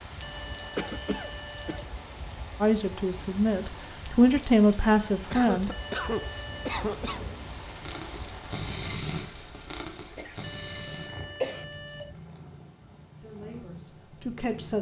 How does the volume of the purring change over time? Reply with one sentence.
The loudness of the purring goes up, then down.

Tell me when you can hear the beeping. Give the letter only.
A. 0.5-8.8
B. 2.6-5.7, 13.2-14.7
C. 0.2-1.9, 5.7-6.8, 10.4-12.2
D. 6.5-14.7
C.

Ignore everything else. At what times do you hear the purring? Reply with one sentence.
You can hear the purring from 6.5 to 14.7 s.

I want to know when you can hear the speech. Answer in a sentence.
The speech can be heard from 2.6 to 5.7 s and from 13.2 to 14.7 s.